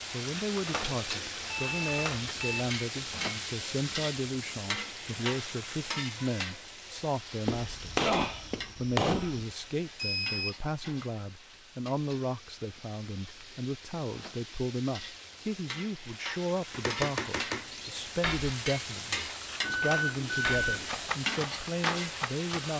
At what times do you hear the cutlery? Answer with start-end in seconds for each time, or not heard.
0.1-3.5, 17.6-22.7.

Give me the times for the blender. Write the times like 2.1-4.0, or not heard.
not heard.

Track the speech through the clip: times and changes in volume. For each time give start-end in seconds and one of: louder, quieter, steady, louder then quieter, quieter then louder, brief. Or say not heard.
0.1-22.7 steady.